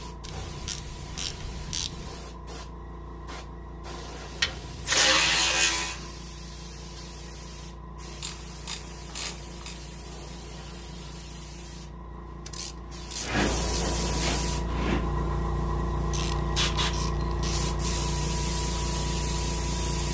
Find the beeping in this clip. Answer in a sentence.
You can't hear the beeping here.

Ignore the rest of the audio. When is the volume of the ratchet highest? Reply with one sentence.
The volume of the ratchet peaks at 5 seconds.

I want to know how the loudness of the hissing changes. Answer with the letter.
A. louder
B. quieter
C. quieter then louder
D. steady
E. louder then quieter
A.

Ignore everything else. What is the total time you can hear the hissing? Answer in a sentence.
The hissing can be heard for 20 seconds in total.